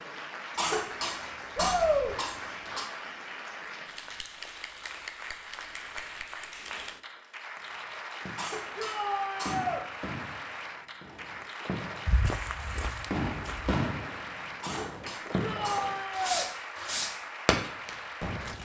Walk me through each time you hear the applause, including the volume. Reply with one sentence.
You can hear the applause from 0.0 to 18.6 s, at a steady volume.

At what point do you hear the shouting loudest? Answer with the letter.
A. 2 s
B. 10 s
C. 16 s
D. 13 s
A.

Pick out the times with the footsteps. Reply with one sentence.
The footsteps can be heard from 12.1 to 13.8 s.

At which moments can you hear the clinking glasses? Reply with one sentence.
You can't hear the clinking glasses here.